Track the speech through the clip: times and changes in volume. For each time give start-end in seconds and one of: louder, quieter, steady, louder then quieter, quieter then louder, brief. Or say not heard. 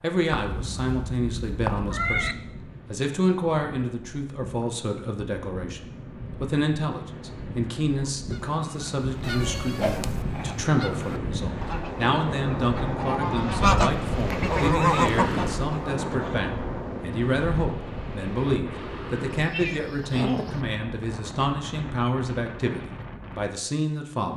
0.0-24.3 steady.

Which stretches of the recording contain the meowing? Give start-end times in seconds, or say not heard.
0.3-2.4, 9.2-10.2, 19.3-20.6.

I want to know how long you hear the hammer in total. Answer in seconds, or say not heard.
not heard.